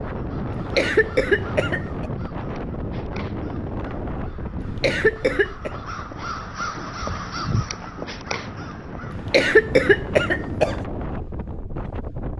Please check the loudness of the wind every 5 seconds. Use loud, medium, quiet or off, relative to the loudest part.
loud, medium, loud.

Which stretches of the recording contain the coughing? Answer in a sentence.
The coughing can be heard from 0.5 to 2.1 s, from 4.6 to 5.7 s and from 9.1 to 10.8 s.